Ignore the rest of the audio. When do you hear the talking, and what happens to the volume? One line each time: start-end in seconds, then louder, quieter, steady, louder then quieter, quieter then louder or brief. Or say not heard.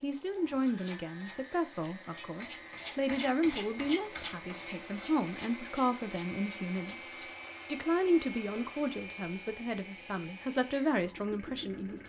0.0-12.0 steady.